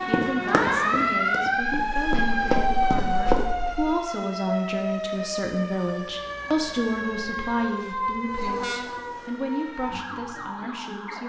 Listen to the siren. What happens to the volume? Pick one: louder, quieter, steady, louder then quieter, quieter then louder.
quieter.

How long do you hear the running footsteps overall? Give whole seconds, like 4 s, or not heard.
3 s.